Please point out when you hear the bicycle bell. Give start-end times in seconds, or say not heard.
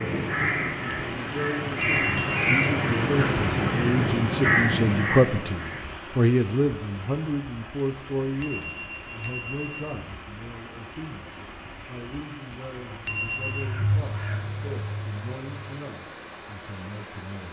1.8-2.8, 8.4-10.0, 13.1-13.7.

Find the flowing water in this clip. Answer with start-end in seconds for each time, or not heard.
0.0-17.4.